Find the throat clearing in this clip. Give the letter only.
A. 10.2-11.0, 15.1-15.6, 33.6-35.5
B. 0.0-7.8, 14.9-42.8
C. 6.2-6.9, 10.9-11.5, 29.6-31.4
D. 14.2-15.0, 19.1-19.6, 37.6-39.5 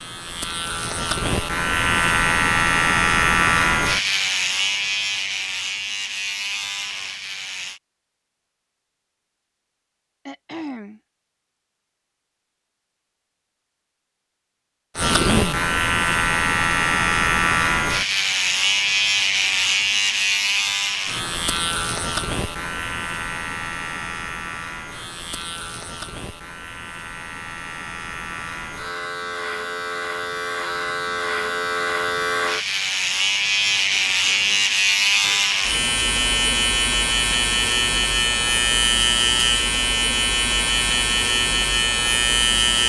A.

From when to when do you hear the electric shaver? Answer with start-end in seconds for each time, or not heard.
0.0-7.8, 14.9-42.8.